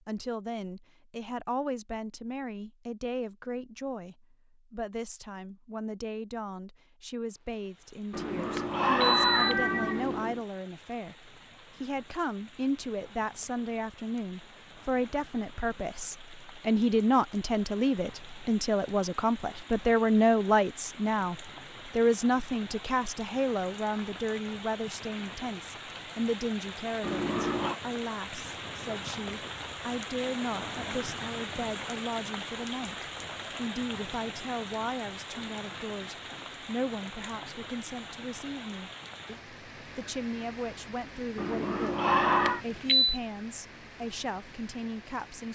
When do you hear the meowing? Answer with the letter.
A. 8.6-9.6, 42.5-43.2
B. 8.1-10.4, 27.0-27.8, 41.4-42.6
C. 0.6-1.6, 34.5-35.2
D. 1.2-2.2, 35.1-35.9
B.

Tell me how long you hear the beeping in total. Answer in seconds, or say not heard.
2 s.